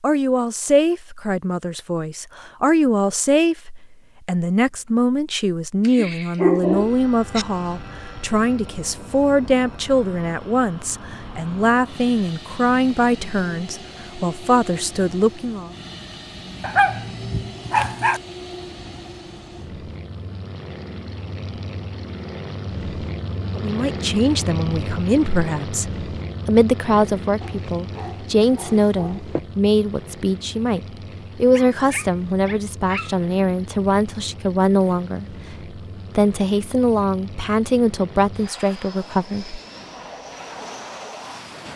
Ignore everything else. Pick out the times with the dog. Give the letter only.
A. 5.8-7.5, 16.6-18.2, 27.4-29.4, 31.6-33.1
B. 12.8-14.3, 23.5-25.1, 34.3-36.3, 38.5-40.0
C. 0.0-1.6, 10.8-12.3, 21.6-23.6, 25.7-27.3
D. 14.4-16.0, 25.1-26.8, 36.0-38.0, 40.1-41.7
A.